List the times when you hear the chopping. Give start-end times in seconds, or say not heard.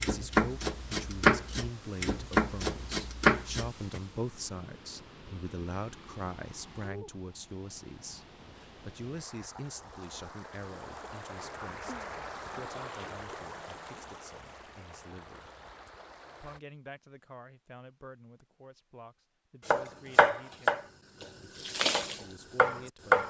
0.0-4.0, 19.6-23.2.